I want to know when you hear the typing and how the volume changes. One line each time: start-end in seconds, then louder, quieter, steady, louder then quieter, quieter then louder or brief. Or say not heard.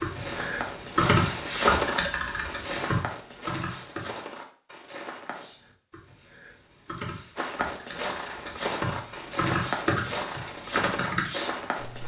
0.0-4.2 louder then quieter
5.2-12.0 louder.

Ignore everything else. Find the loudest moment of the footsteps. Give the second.
2 s.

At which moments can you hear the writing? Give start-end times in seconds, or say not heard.
not heard.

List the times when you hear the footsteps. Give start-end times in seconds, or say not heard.
0.0-5.5, 7.3-12.0.